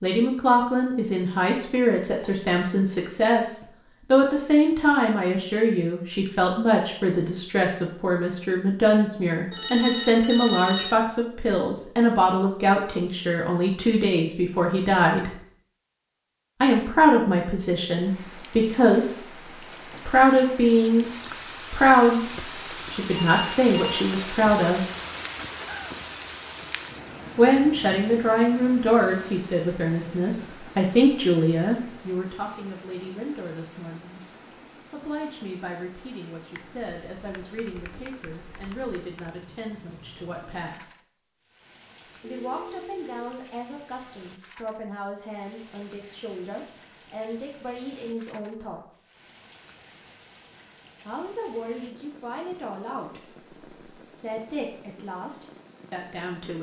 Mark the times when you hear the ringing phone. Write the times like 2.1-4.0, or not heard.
9.5-11.0, 23.1-24.1, 42.3-43.3.